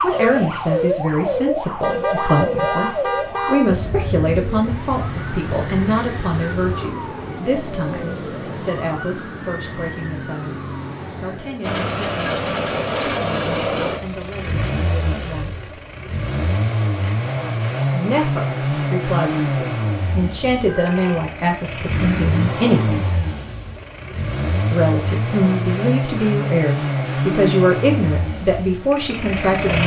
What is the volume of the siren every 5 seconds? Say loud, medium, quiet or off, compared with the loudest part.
loud, medium, medium, off, off, off.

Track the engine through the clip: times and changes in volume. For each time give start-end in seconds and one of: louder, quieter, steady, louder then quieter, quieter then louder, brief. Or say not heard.
11.6-29.8 steady.